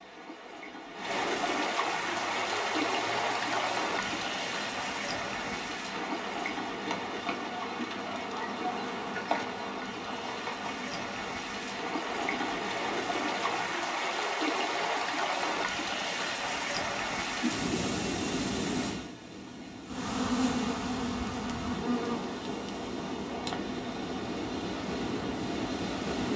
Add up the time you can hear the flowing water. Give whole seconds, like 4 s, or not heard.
26 s.